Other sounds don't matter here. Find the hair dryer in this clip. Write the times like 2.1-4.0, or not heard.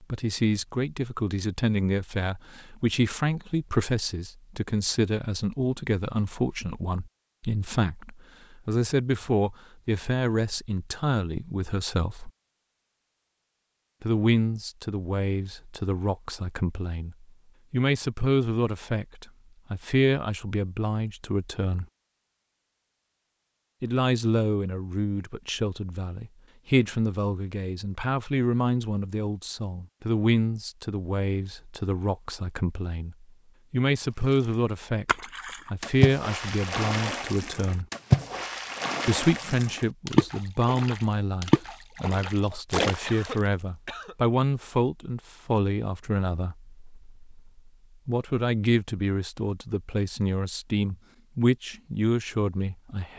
not heard.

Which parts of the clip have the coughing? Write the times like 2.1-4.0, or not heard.
42.9-44.1.